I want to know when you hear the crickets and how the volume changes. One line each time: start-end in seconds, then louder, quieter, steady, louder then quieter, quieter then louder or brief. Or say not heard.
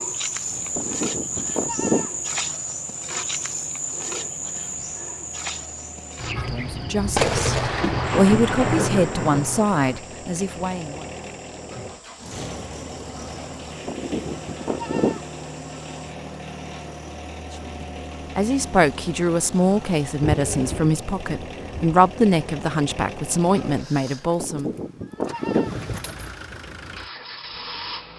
0.0-16.1 quieter.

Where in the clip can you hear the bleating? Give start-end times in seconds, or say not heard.
0.8-2.1, 13.8-15.2, 24.4-25.8.